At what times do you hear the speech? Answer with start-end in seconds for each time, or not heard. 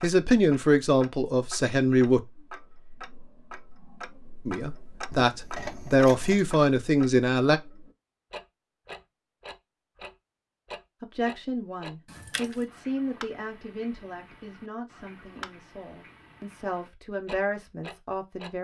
0.0-2.2, 4.5-7.6, 11.0-18.5.